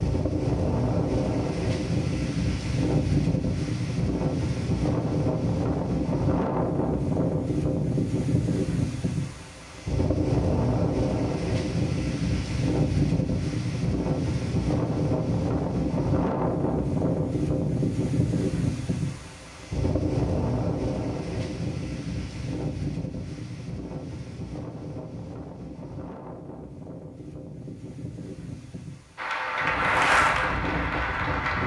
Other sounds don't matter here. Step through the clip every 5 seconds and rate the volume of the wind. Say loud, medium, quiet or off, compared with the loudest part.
loud, loud, loud, loud, medium, quiet, medium.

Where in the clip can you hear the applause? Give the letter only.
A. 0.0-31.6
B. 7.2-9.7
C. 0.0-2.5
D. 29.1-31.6
D.